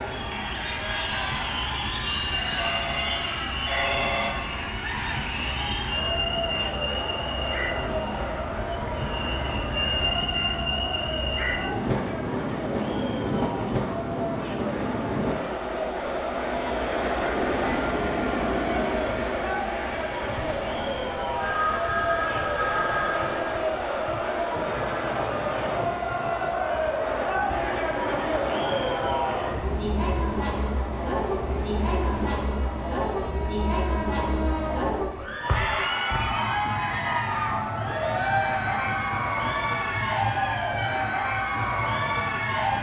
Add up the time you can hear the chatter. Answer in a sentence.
You can hear the chatter for 43 seconds altogether.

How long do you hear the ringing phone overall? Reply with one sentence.
The ringing phone can be heard for 5 seconds in total.